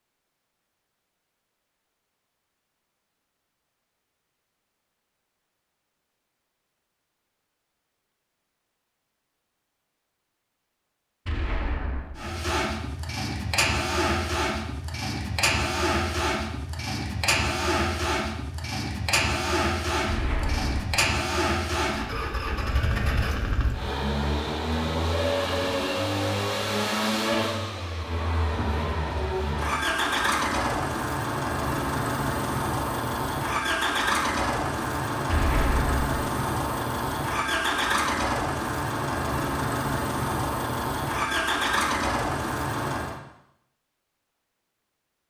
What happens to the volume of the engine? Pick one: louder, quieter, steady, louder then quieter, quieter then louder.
steady.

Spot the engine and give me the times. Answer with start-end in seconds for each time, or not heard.
12.2-43.2.